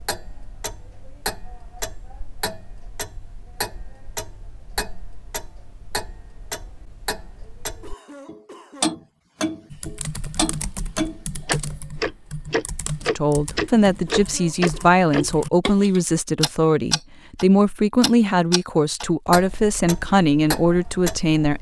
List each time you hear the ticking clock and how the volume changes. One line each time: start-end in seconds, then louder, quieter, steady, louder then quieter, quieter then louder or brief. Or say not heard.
0.0-21.5 louder then quieter.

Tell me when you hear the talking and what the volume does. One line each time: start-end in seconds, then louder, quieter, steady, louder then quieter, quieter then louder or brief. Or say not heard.
13.1-21.5 steady.